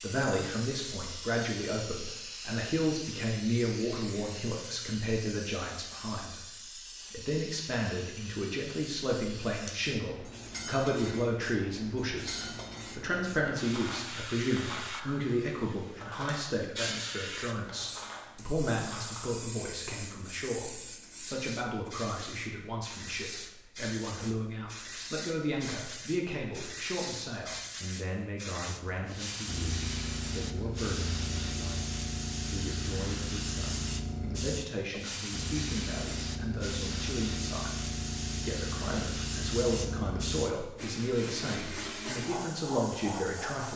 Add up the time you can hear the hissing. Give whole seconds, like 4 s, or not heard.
44 s.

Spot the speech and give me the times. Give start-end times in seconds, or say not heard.
0.0-43.7.